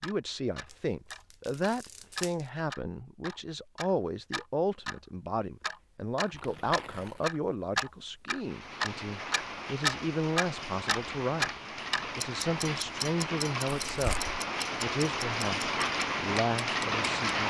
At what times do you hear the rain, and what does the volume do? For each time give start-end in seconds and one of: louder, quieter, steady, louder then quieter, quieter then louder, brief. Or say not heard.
8.3-17.4 louder.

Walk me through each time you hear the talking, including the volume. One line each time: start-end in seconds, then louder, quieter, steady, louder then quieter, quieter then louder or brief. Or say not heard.
0.0-14.2 steady
14.8-17.4 brief.